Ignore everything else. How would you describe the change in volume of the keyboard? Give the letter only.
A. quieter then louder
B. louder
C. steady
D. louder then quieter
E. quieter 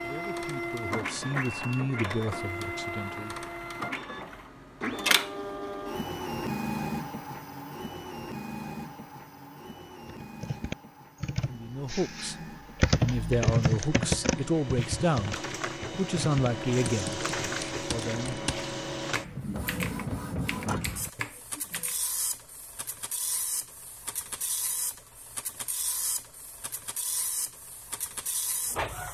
D.